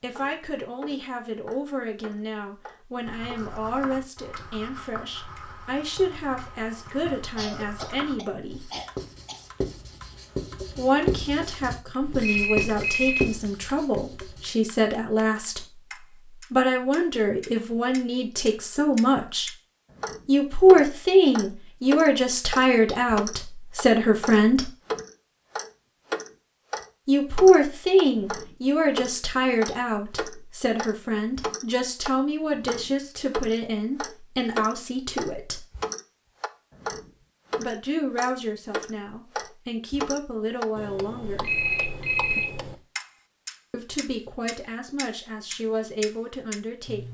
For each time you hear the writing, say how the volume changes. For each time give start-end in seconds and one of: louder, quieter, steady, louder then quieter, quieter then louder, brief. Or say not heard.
3.0-14.6 louder.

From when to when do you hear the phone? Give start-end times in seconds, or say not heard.
12.0-13.4, 41.2-42.8.